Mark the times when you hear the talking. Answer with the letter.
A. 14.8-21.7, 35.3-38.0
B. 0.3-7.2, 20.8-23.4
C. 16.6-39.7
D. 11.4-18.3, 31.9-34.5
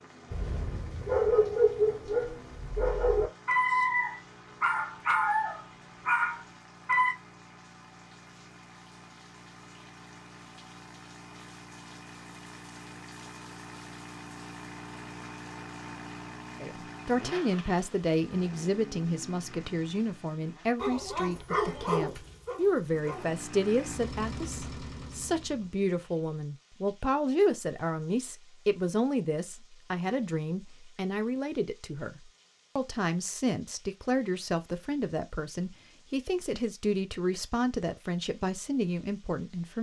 C.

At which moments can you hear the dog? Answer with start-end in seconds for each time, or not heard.
0.3-7.2, 20.8-23.4.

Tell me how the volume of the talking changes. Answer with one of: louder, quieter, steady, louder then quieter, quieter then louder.
steady.